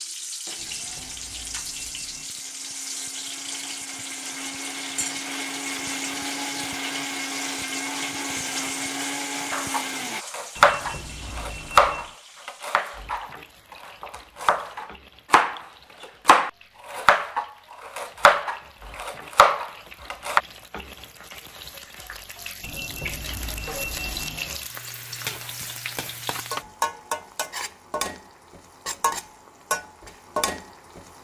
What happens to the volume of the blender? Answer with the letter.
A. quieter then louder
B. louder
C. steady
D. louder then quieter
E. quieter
B.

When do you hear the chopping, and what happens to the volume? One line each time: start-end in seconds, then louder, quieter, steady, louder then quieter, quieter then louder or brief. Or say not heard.
9.5-20.4 quieter then louder.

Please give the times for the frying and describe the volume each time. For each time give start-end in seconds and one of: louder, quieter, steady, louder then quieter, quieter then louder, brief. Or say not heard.
0.0-31.1 quieter then louder.